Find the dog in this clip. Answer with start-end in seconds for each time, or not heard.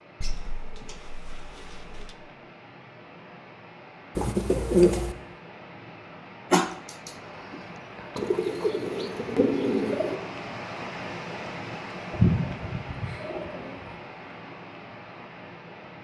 6.5-8.1.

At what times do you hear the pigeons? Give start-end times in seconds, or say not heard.
0.2-2.1, 4.2-5.2, 8.2-10.2, 12.1-13.8.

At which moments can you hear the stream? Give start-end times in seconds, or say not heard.
0.0-15.9.